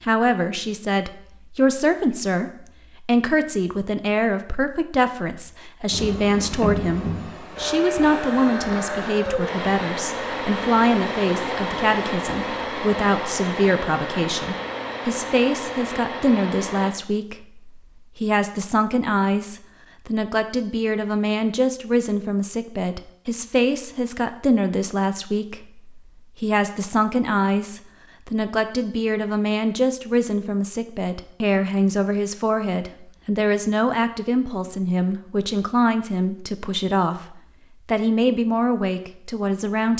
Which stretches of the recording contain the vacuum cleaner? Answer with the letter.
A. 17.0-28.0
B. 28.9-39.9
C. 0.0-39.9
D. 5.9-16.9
D.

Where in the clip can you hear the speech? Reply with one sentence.
The speech can be heard from 0.0 to 39.9 s.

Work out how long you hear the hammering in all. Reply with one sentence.
You can't hear the hammering here.